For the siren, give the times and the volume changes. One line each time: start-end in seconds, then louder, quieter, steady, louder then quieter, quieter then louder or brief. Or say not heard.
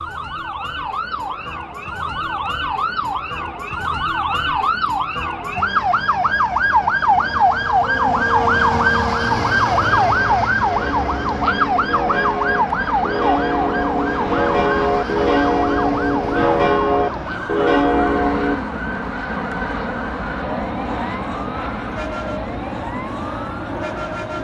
0.0-24.3 louder then quieter.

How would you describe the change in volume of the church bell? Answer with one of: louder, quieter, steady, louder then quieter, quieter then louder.
louder.